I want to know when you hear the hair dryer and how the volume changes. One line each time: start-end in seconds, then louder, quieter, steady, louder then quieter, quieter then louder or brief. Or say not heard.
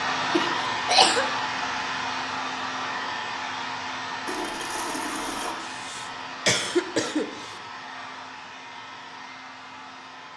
0.0-10.3 quieter.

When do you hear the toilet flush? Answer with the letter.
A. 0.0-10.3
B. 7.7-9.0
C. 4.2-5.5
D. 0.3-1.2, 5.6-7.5
C.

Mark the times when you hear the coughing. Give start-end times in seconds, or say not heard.
0.3-1.2, 5.6-7.5.